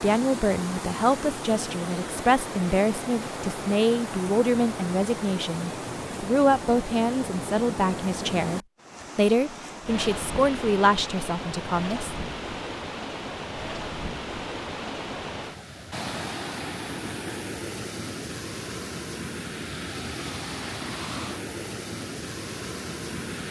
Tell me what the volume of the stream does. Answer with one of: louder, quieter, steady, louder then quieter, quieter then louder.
steady.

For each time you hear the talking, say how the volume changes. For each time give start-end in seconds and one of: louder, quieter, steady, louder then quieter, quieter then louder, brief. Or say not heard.
0.0-12.2 steady.